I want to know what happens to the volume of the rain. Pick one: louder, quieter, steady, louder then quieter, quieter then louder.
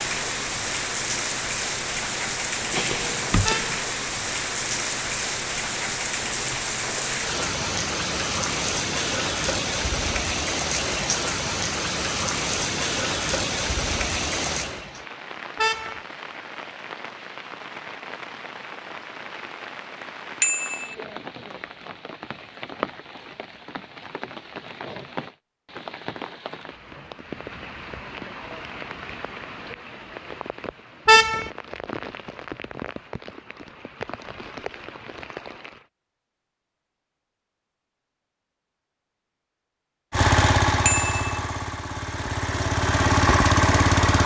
quieter.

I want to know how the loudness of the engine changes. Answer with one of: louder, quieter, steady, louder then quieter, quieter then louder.
quieter then louder.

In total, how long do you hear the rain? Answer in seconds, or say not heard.
36 s.